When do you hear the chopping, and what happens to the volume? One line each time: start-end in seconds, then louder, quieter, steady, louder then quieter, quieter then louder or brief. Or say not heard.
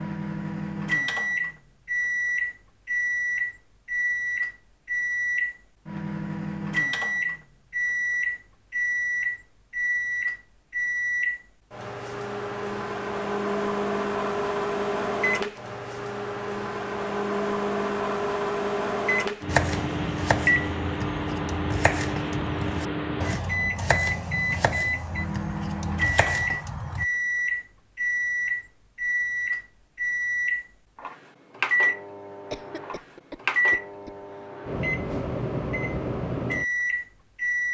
19.4-27.1 steady.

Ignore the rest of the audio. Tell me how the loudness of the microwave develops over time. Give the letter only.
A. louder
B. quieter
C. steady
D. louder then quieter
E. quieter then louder
C.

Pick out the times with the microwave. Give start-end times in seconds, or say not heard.
0.0-37.6.